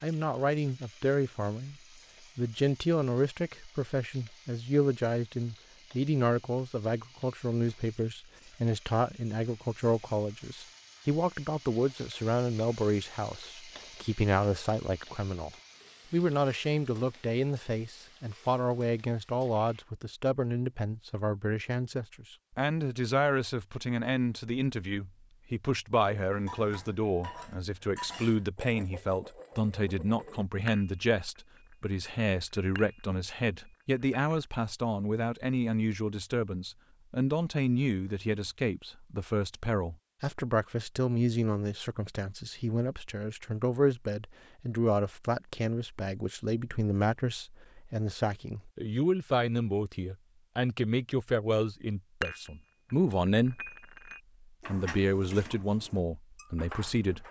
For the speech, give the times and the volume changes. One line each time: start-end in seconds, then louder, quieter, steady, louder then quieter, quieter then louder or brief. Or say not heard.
0.0-1.8 brief
2.4-15.5 steady
16.1-53.7 steady
54.6-57.2 brief.